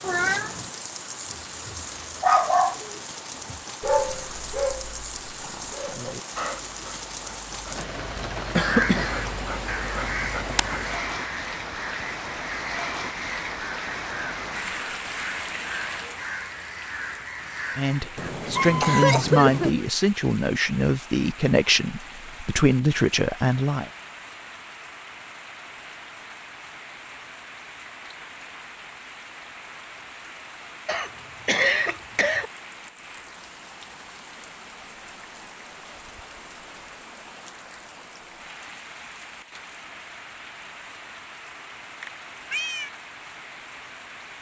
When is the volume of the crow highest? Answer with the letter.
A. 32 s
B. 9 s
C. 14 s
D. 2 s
B.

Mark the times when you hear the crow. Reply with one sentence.
The crow can be heard from 8.6 to 18.4 s.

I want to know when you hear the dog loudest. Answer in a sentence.
The loudest moment of the dog is at 2 seconds.